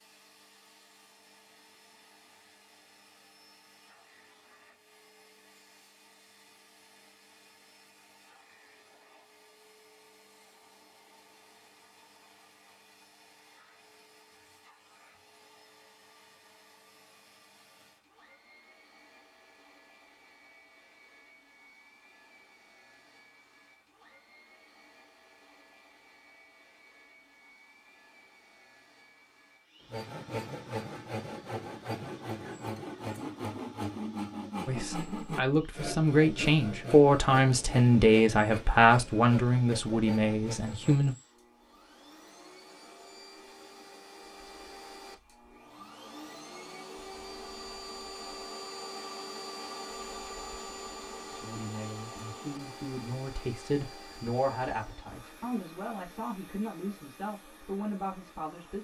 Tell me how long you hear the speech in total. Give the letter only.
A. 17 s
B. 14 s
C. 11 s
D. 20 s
B.